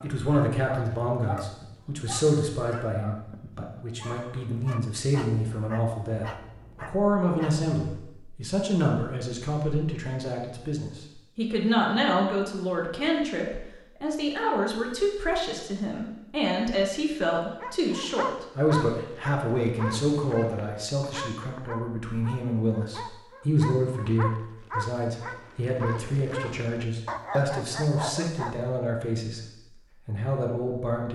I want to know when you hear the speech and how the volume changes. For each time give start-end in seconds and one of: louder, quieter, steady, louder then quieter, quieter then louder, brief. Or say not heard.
0.0-29.4 steady
30.1-31.1 brief.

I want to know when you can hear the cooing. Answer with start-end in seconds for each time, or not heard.
not heard.